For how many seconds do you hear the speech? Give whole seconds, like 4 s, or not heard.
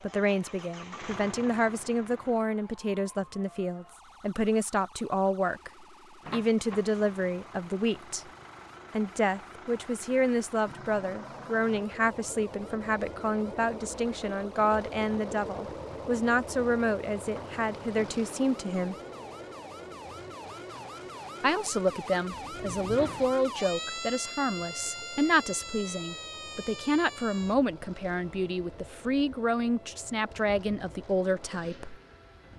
28 s.